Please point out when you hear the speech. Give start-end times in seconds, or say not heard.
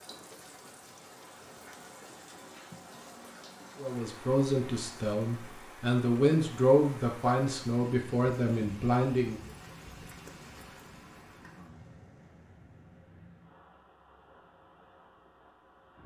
3.8-9.4.